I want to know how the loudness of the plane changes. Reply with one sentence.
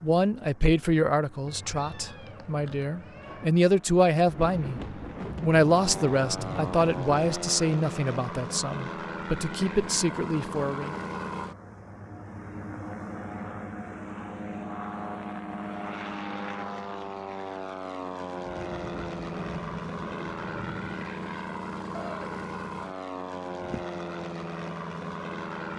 The loudness of the plane goes up.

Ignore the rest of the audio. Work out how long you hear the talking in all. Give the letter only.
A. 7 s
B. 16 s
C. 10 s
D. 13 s
C.